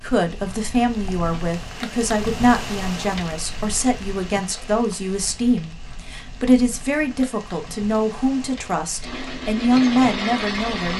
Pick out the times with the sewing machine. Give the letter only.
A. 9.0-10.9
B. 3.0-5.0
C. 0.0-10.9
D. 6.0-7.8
A.